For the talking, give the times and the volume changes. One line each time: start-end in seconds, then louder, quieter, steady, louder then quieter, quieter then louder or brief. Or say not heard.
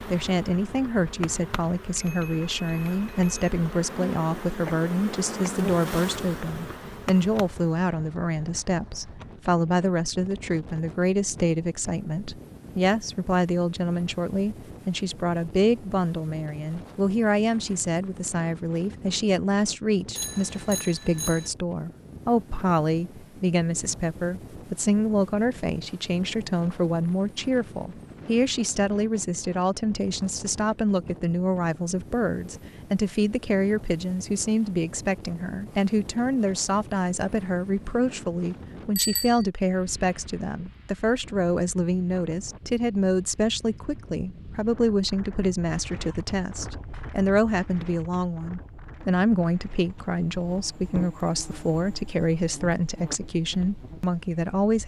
0.1-54.8 steady.